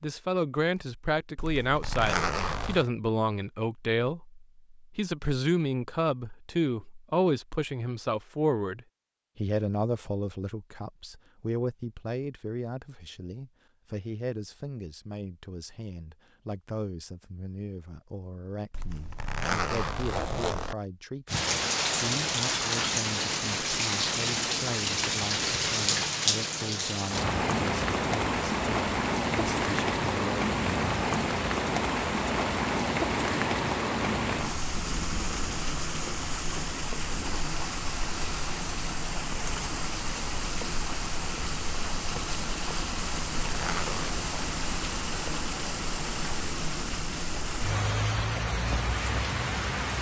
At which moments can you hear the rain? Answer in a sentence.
The rain can be heard from 21.2 to 49.9 s.